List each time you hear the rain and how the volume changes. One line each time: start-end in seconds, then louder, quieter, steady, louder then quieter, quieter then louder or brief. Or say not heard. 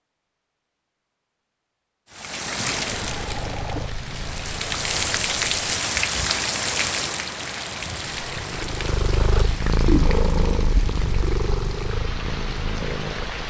2.1-13.4 louder then quieter.